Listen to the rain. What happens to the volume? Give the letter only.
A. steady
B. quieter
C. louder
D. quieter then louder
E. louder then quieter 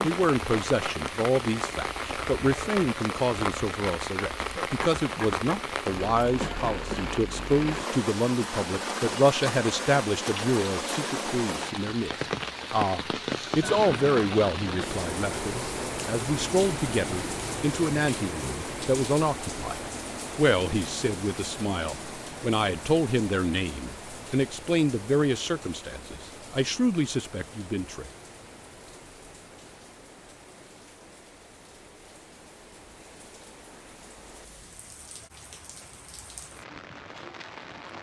B.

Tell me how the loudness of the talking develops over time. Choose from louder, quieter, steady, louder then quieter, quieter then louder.
steady.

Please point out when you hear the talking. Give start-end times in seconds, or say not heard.
0.0-12.1, 12.7-28.1.